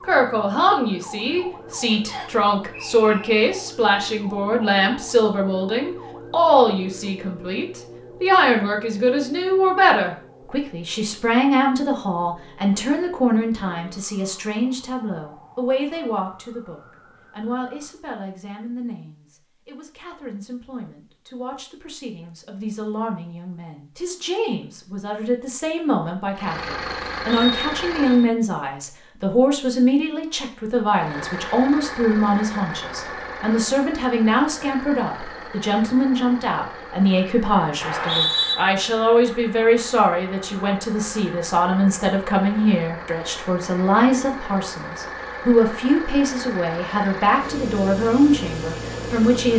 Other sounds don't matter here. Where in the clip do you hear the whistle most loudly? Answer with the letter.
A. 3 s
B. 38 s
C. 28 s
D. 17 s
B.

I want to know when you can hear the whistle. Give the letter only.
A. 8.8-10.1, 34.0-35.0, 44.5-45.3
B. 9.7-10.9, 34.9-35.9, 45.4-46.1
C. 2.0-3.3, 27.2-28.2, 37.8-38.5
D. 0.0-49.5
C.